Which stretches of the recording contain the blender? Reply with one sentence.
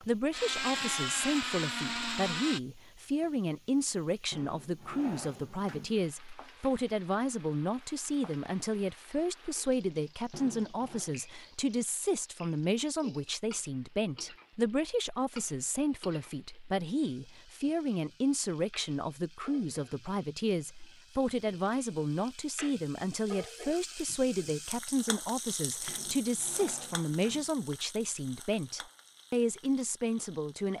You can hear the blender from 0.0 to 2.6 s.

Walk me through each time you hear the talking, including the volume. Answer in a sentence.
The talking can be heard from 0.1 to 30.7 s, at a steady volume.